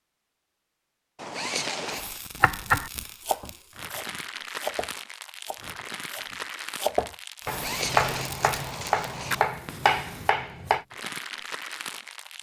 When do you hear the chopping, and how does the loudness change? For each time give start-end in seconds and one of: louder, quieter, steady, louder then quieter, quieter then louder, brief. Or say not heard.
2.4-10.8 louder.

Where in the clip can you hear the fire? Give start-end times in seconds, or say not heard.
1.9-12.3.